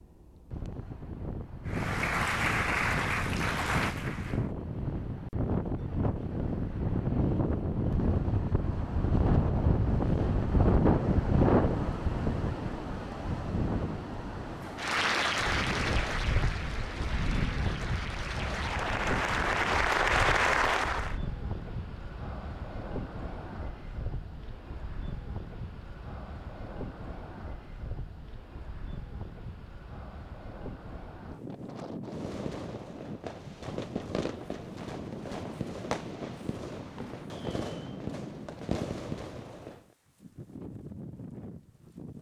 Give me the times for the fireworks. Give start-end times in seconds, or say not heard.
32.0-39.9.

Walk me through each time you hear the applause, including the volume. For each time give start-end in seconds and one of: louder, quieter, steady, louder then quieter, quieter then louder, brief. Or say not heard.
1.6-4.5 brief
14.7-21.1 quieter then louder.